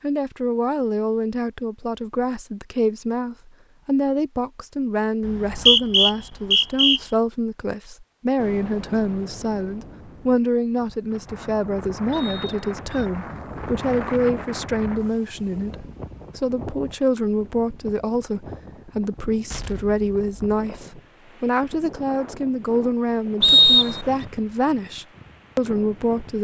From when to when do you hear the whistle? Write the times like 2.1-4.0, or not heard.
5.2-7.0, 12.1-13.1, 23.4-24.1.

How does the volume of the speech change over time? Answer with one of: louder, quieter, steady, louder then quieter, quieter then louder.
steady.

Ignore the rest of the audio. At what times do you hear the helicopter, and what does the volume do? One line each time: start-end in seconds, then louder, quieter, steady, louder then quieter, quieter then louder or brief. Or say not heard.
not heard.